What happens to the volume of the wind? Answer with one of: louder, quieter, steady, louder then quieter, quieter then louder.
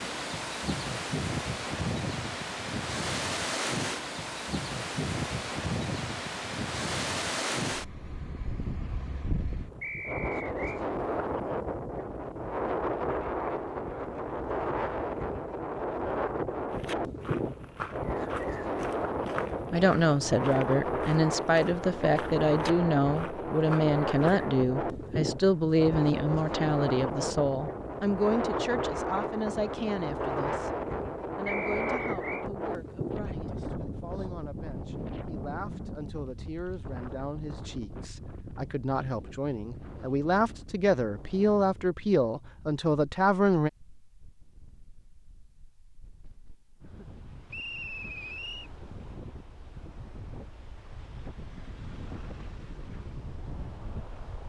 quieter.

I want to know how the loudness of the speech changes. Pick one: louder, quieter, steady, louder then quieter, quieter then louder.
quieter then louder.